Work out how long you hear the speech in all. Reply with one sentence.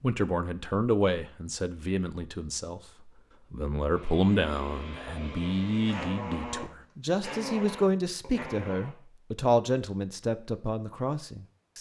You can hear the speech for 12 seconds altogether.